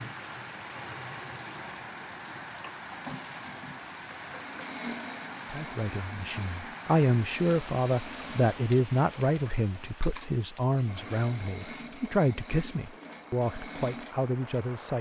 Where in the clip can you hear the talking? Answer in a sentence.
You can hear the talking from 5.5 to 14.9 s.